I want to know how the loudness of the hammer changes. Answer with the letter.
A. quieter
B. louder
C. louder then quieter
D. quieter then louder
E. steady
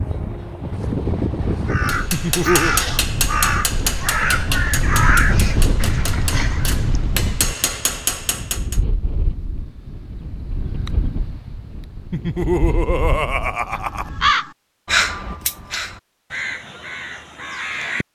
D.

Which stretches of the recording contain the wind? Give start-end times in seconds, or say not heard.
0.0-14.3.